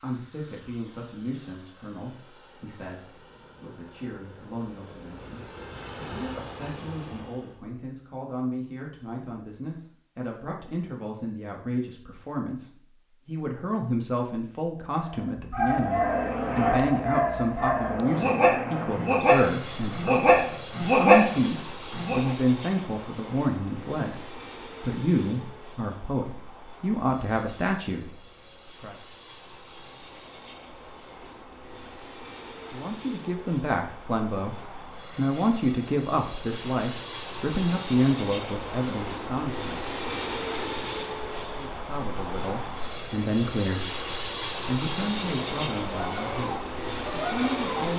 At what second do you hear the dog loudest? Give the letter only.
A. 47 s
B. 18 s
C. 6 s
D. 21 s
D.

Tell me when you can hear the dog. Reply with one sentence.
You can hear the dog from 15.1 to 22.3 s and from 46.0 to 47.9 s.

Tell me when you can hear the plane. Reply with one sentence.
The plane can be heard from 0.0 to 7.7 s and from 15.7 to 47.9 s.